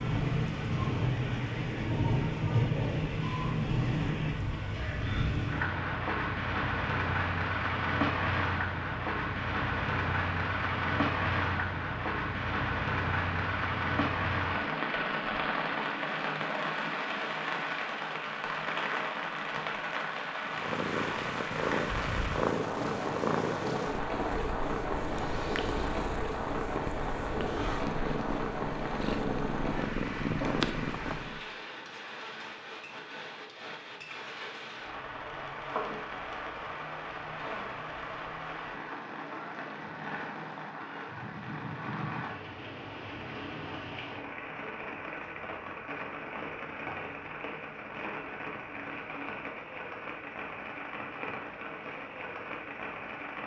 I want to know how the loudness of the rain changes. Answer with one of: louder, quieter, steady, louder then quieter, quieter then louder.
quieter.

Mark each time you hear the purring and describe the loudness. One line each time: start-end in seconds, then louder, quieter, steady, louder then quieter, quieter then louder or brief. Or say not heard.
20.4-31.4 quieter then louder.